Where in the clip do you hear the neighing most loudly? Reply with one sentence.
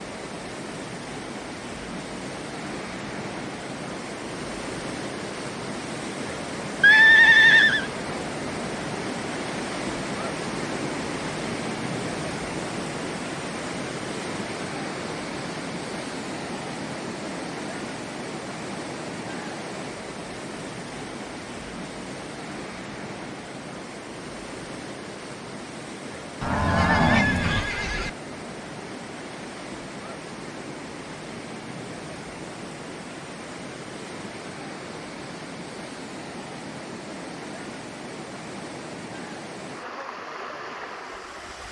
The loudest moment of the neighing is at 7 seconds.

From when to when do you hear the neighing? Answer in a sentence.
You can hear the neighing from 6.8 to 7.8 s and from 26.4 to 28.1 s.